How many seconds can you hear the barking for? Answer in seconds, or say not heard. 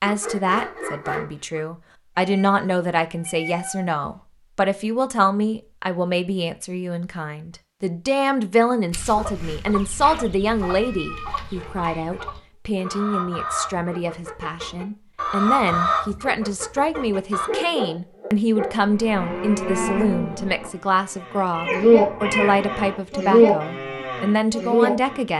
5 s.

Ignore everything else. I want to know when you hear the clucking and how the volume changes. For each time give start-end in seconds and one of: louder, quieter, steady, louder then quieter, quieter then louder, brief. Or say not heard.
8.9-17.5 louder.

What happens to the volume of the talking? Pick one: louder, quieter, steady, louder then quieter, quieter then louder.
steady.